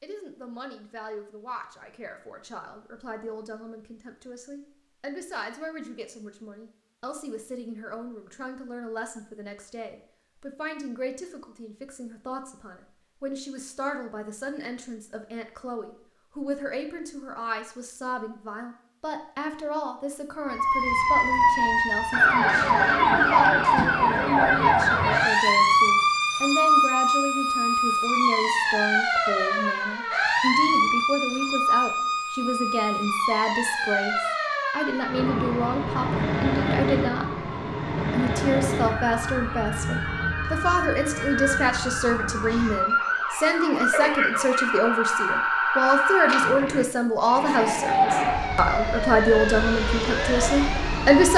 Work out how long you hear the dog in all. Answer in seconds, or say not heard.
not heard.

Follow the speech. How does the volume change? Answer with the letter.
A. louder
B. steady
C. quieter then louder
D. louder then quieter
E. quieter
A.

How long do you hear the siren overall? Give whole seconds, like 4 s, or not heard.
31 s.